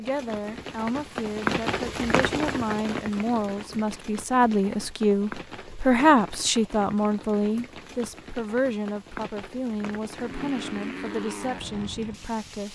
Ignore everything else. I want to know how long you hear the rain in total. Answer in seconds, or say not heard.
13 s.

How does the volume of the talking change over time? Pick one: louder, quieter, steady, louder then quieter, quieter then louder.
louder then quieter.